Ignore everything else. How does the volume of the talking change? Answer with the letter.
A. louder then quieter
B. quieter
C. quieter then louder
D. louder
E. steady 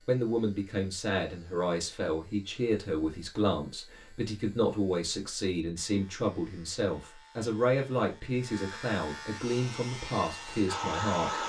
E.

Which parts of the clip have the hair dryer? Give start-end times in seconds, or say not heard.
9.4-11.4.